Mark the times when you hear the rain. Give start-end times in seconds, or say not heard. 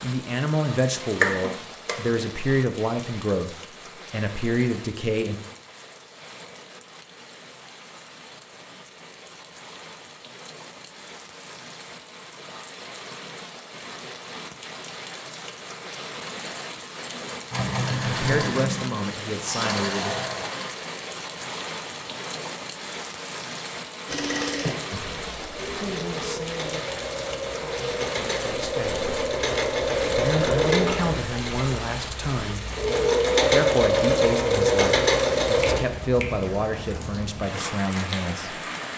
0.0-38.9.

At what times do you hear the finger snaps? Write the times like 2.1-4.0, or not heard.
1.2-1.9, 35.6-36.4.